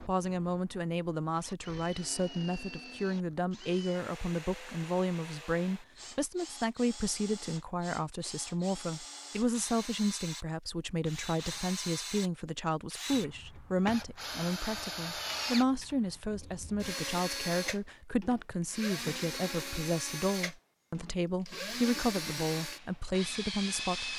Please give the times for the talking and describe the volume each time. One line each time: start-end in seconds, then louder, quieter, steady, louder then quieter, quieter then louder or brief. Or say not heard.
0.1-24.1 steady.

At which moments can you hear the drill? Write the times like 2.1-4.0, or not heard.
0.0-24.1.